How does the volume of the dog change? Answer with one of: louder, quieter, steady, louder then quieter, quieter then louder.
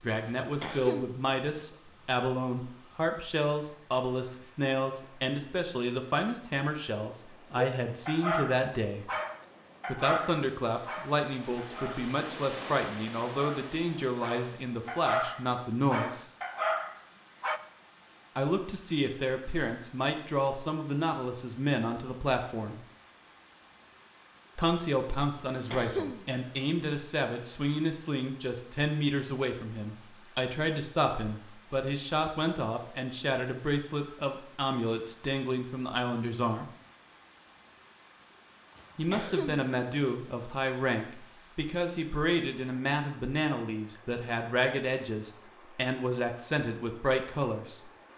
quieter then louder.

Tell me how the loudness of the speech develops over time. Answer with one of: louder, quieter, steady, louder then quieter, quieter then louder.
steady.